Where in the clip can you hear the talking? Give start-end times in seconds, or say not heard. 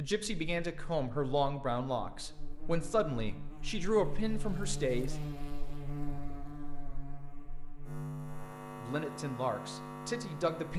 0.0-5.2, 8.8-10.7.